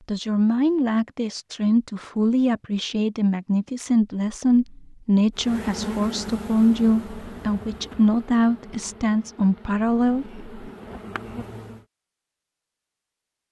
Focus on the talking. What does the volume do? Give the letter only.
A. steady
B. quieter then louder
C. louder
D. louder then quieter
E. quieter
A.